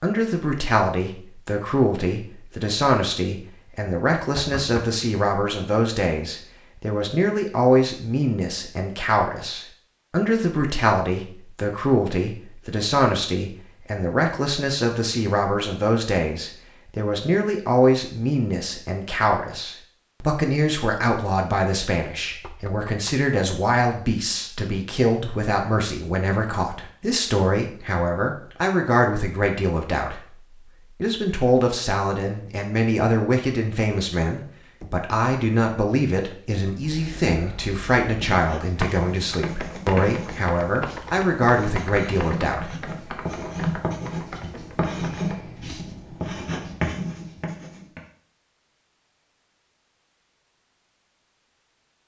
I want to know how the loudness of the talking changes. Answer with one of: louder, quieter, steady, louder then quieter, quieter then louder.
steady.